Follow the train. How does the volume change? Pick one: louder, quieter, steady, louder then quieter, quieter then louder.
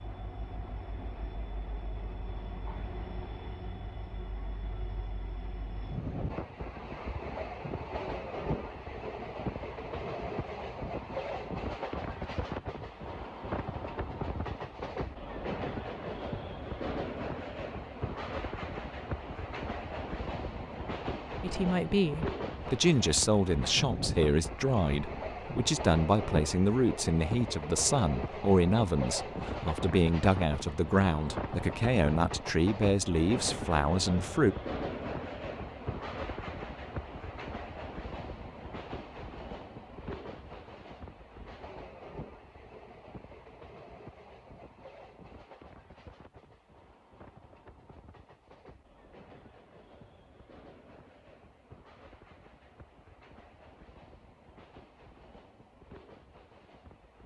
quieter.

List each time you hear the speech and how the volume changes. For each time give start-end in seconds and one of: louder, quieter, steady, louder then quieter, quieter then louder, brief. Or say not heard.
21.4-34.5 steady.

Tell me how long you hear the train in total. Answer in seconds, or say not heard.
57 s.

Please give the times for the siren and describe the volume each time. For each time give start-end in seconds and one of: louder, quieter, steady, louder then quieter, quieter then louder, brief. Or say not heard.
not heard.